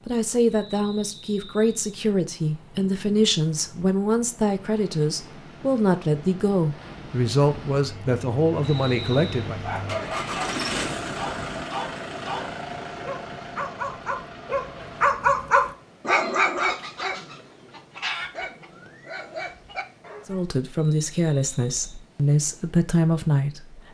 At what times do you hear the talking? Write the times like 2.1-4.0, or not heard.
0.1-9.6, 20.2-23.8.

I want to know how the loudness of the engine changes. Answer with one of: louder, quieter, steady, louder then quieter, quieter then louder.
louder then quieter.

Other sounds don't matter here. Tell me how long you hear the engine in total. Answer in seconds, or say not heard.
7 s.